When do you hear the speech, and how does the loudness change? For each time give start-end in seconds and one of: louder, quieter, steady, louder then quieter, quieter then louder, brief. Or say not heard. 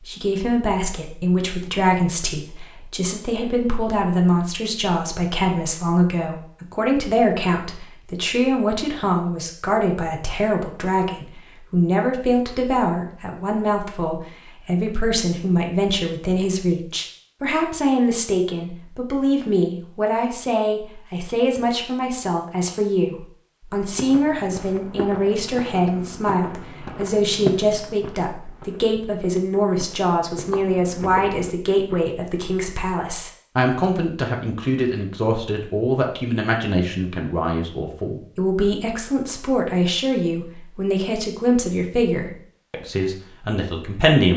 0.0-44.3 steady.